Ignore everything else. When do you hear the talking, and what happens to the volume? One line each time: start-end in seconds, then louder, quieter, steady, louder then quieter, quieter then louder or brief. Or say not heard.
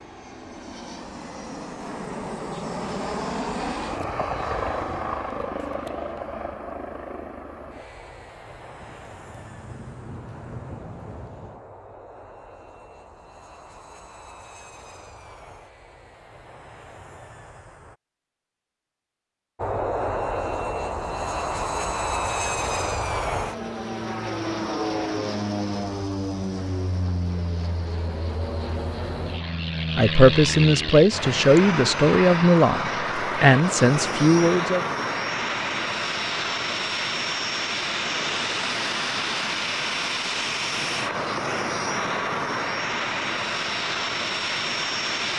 29.9-34.8 steady.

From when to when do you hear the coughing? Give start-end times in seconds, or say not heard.
not heard.